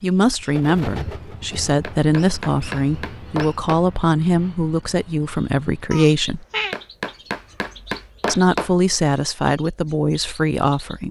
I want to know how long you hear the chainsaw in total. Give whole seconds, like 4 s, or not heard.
not heard.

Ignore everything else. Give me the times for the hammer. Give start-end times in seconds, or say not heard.
1.8-3.8, 6.7-8.7.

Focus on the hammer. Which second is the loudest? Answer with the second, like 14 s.
8 s.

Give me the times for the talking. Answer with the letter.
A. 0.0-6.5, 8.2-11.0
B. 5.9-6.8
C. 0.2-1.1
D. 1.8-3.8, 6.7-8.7
A.